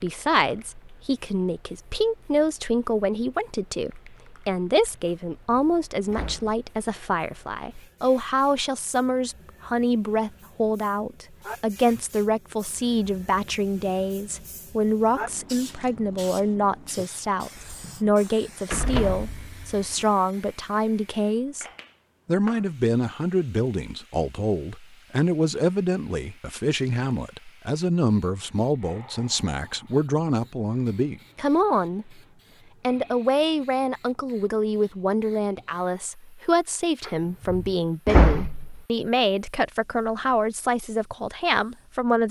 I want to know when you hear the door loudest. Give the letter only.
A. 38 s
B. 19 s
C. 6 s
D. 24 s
A.